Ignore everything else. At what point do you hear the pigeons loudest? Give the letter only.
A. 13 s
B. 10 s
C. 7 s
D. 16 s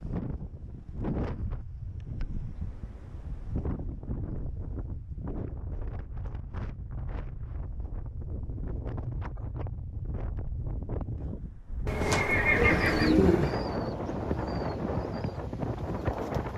A.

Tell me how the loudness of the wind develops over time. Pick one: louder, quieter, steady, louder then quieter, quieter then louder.
louder.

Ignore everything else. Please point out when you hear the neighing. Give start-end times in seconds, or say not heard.
11.8-13.2.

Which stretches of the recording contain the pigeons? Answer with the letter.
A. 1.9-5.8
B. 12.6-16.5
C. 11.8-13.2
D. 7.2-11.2
B.